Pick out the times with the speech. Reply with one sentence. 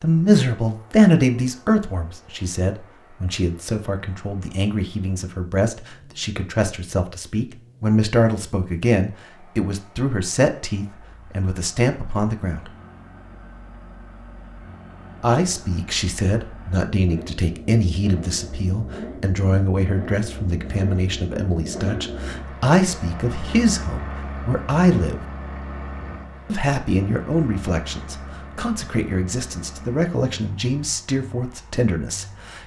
The speech can be heard from 0.0 to 12.7 s, from 15.2 to 25.1 s and from 26.4 to 32.6 s.